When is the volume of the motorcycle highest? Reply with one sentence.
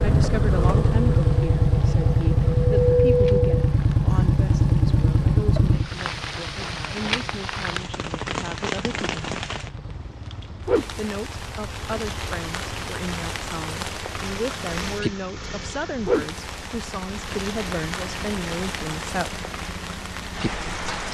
The volume of the motorcycle peaks at 3 seconds.